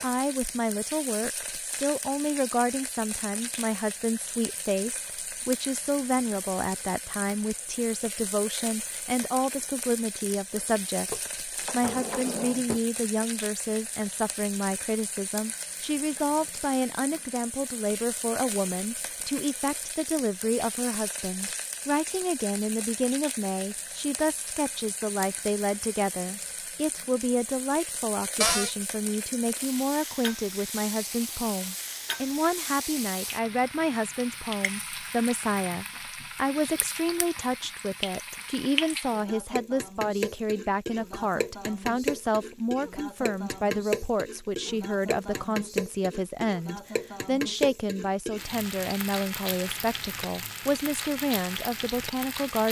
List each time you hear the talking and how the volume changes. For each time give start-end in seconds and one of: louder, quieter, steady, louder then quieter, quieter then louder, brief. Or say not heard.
0.0-52.6 steady.